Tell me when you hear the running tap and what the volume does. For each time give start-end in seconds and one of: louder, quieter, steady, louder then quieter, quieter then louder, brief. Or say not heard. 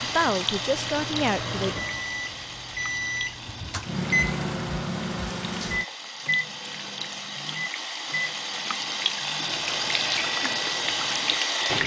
0.0-11.8 quieter then louder.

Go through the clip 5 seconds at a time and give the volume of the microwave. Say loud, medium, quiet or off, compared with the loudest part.
loud, loud, medium.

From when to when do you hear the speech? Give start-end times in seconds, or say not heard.
0.0-1.8.